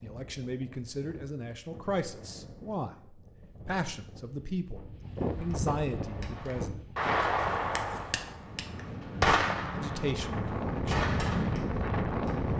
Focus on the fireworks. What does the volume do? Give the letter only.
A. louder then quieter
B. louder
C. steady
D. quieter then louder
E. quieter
A.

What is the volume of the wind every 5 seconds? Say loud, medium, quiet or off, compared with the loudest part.
quiet, medium, loud.